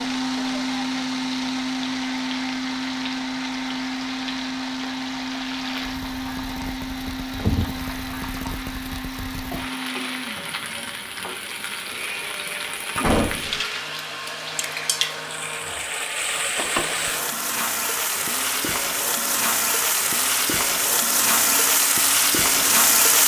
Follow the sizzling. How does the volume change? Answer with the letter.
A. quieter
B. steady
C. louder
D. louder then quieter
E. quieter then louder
C.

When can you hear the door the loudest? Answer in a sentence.
The volume of the door peaks at 13 seconds.